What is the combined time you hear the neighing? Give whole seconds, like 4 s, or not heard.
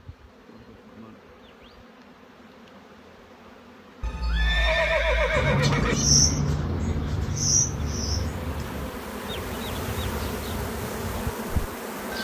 2 s.